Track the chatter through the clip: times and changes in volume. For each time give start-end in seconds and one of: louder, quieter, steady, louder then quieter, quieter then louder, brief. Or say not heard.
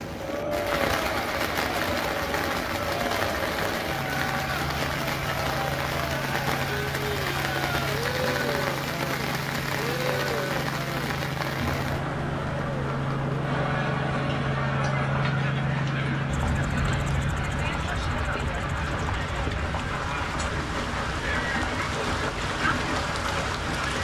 0.1-23.9 steady.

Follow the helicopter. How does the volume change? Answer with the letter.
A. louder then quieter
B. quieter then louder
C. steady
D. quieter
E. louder
A.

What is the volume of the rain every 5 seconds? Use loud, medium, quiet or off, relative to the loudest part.
loud, loud, loud, medium, loud.